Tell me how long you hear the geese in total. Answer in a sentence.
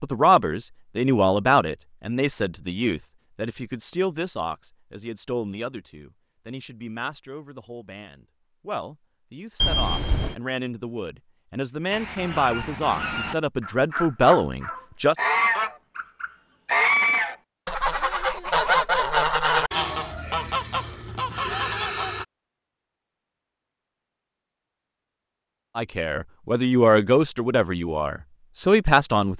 The geese can be heard for 10 seconds in total.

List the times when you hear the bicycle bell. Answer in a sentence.
The bicycle bell can be heard from 9.6 to 10.3 s.